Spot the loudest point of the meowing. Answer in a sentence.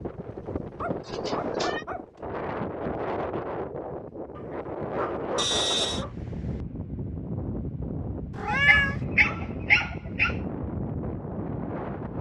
The volume of the meowing peaks at 9 seconds.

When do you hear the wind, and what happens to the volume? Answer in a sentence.
The wind can be heard from 0.0 to 12.1 s, at a steady volume.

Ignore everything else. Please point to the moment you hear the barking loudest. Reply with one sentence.
The loudest moment of the barking is at 10 seconds.